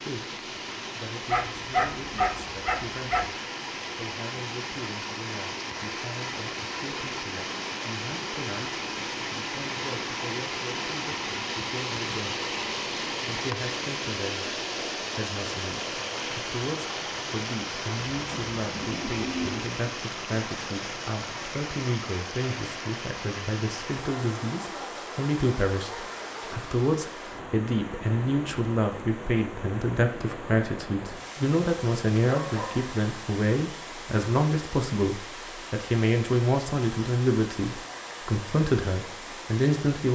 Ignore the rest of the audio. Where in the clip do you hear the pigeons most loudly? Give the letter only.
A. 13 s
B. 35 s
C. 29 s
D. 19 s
D.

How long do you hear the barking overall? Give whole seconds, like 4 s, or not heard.
3 s.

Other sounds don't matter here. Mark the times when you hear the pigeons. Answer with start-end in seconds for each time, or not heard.
18.1-19.6.